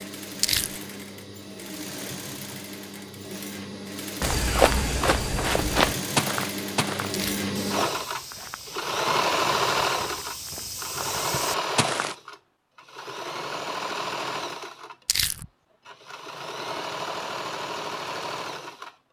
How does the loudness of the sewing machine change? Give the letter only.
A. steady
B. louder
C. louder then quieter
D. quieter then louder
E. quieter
C.